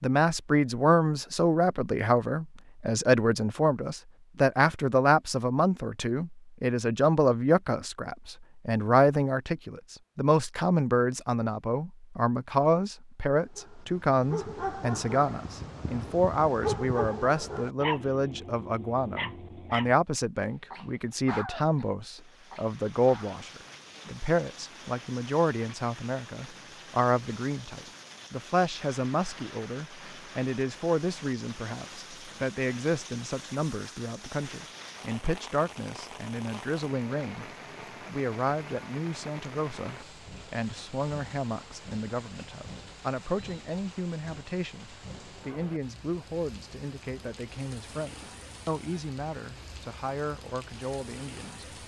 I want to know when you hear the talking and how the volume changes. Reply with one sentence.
The talking can be heard from 0.0 to 51.7 s, getting quieter.